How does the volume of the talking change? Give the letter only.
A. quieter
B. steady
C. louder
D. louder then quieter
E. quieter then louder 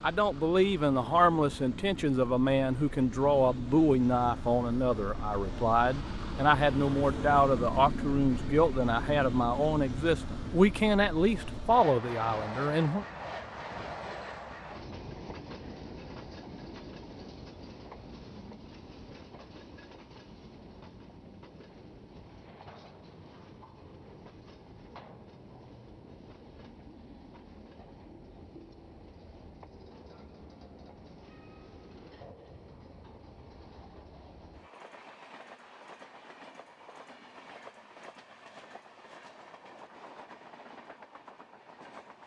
B.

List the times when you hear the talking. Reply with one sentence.
The talking can be heard from 0.0 to 13.1 s.